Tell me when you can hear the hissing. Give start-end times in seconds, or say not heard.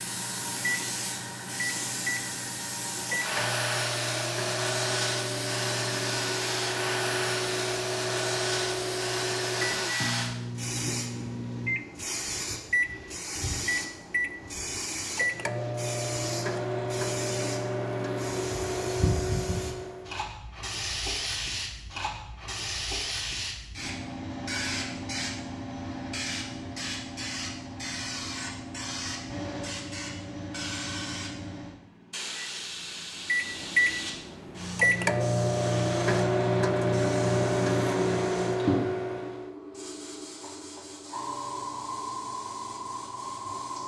0.0-43.8.